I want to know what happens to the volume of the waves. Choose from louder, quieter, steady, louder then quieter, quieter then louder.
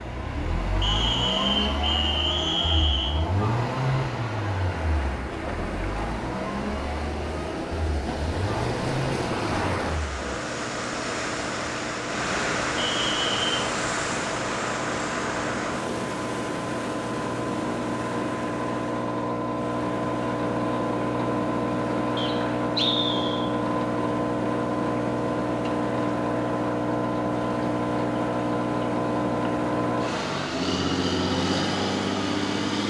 louder then quieter.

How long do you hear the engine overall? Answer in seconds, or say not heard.
33 s.